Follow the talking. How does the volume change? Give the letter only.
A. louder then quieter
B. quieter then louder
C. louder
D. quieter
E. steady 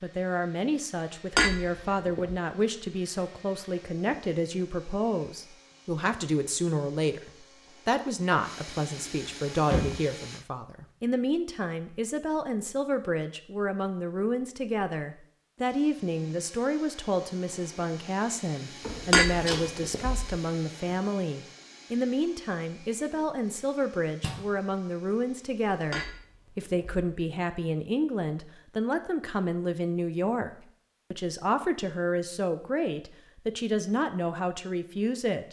E.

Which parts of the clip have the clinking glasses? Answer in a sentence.
The clinking glasses can be heard from 1.4 to 2.4 s, from 19.1 to 20.4 s and from 25.9 to 27.1 s.